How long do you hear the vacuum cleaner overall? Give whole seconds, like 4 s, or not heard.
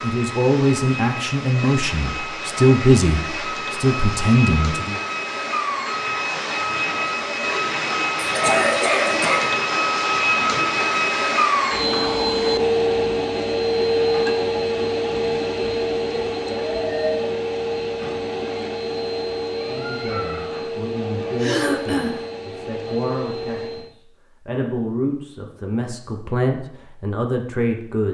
24 s.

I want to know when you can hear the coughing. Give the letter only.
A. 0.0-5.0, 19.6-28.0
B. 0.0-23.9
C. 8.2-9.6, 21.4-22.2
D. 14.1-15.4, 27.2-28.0
C.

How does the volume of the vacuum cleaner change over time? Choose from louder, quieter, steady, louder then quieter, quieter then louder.
louder then quieter.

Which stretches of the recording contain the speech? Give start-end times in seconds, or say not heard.
0.0-5.0, 19.6-28.0.